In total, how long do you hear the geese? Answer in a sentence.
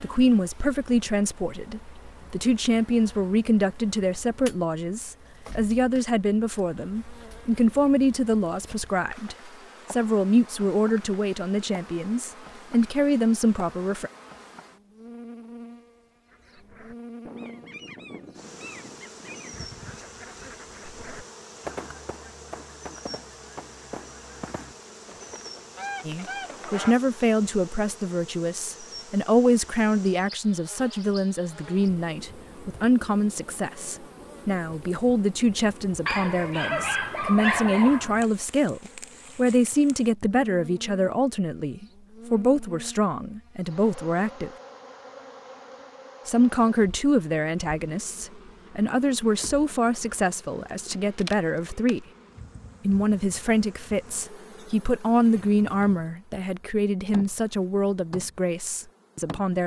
You can hear the geese for 11 seconds altogether.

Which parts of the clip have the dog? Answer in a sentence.
The dog can be heard from 36.0 to 38.2 s.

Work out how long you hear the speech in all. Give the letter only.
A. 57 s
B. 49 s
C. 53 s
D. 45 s
D.